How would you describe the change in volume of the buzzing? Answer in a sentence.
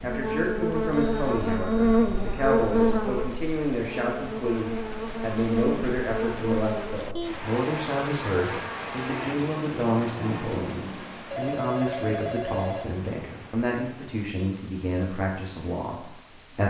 The loudness of the buzzing goes down.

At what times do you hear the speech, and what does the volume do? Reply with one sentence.
You can hear the speech from 0.0 to 16.6 s, at a steady volume.